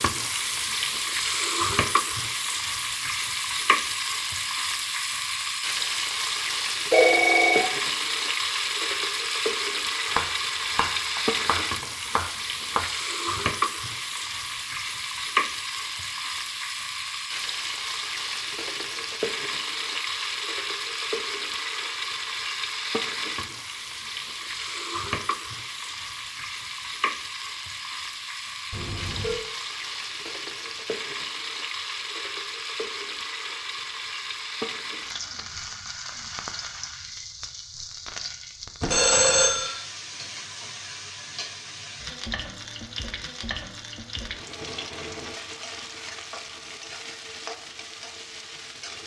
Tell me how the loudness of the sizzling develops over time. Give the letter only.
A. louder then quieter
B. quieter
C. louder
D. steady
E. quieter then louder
B.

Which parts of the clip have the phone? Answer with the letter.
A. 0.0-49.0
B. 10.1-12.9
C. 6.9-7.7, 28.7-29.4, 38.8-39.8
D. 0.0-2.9
C.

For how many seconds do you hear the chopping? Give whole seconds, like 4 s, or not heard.
3 s.